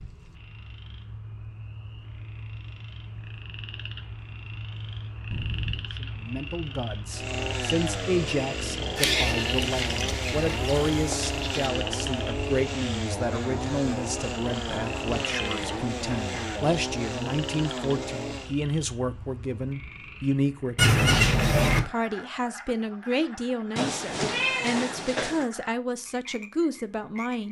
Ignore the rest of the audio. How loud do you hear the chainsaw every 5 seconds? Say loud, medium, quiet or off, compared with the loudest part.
off, loud, loud, loud, off, off.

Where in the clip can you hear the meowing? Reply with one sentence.
You can hear the meowing from 5.3 to 6.0 s, from 14.7 to 16.6 s and from 23.8 to 25.4 s.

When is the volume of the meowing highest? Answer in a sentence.
The loudest moment of the meowing is at 24 seconds.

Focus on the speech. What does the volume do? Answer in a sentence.
The volume of the speech stays about the same.